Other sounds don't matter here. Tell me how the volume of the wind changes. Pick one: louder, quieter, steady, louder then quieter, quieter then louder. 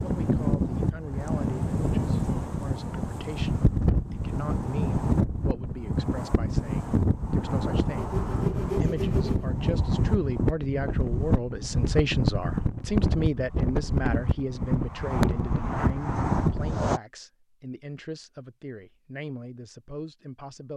steady.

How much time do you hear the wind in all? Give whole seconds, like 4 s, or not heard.
17 s.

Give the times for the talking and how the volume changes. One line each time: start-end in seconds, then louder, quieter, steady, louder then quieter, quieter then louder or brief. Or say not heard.
0.0-20.7 louder then quieter.